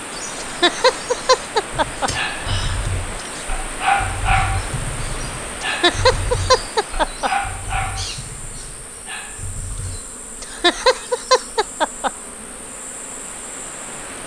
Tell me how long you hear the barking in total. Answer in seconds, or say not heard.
8 s.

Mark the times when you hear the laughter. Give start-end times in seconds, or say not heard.
0.4-2.8, 5.6-7.3, 10.4-12.1.